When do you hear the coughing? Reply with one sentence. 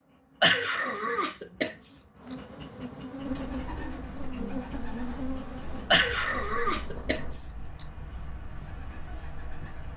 The coughing can be heard from 0.4 to 2.4 s and from 5.9 to 7.8 s.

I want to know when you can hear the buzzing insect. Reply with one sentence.
The buzzing insect can be heard from 0.0 to 7.4 s.